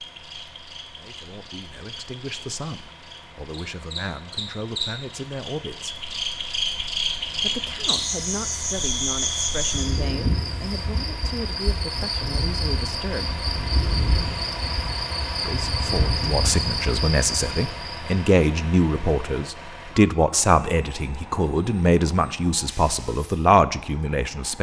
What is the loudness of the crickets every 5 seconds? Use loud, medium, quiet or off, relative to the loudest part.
medium, loud, loud, loud, off.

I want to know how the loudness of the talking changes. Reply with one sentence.
The loudness of the talking goes up.